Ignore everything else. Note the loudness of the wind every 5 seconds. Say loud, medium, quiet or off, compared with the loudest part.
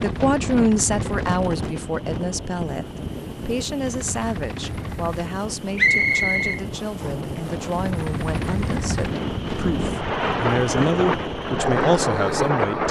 medium, medium, loud.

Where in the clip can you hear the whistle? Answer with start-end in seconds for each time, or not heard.
5.8-7.1.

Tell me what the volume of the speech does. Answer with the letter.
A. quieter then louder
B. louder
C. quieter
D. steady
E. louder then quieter
A.